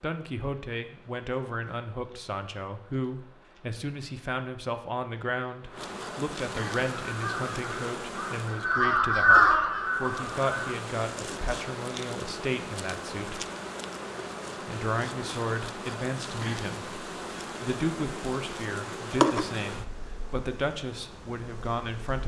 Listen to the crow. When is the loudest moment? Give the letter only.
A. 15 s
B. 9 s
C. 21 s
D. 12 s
B.